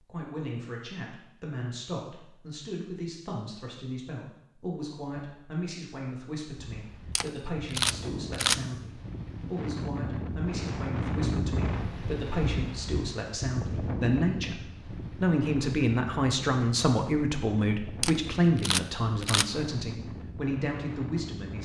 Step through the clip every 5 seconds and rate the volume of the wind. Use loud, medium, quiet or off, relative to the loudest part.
off, medium, loud, medium, medium.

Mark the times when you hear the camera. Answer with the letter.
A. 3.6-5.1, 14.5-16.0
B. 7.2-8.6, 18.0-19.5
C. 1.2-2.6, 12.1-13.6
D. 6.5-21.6
B.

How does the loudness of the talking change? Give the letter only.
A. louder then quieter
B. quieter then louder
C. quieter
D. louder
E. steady
D.